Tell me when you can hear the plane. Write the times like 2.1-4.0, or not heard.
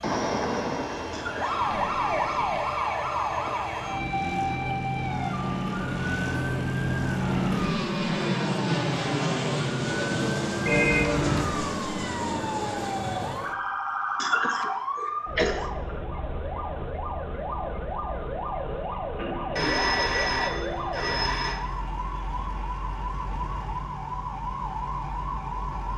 0.0-13.4.